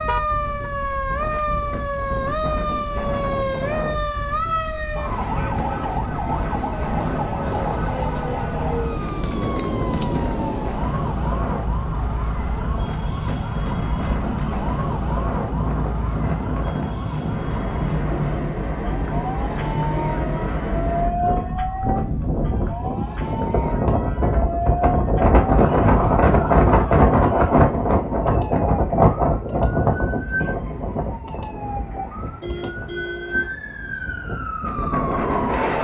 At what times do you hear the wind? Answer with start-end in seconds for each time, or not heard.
0.0-35.7.